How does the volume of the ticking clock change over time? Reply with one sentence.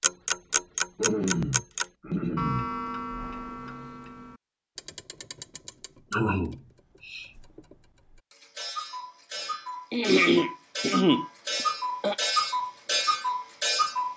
The loudness of the ticking clock goes down, then up.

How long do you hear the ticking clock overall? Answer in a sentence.
You can hear the ticking clock for 14 seconds altogether.